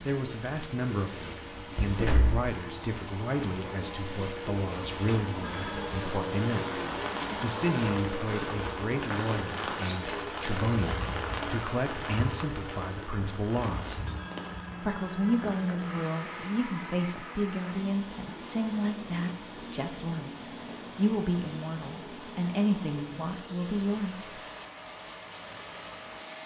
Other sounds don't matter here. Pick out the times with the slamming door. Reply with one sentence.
The slamming door can be heard from 1.8 to 2.5 s.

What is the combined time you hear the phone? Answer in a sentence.
The phone can be heard for 3 seconds in total.